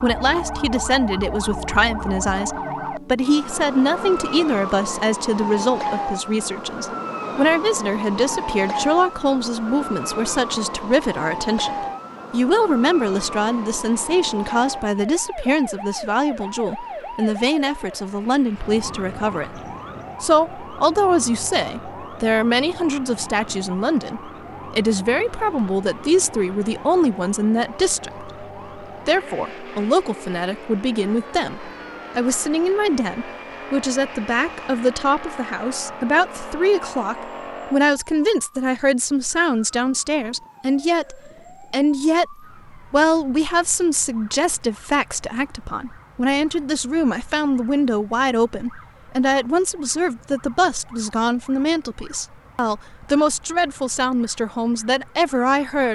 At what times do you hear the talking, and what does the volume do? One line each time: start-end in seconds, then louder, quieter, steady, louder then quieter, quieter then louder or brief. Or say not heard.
0.0-19.6 steady
20.2-28.3 steady
29.1-55.8 steady.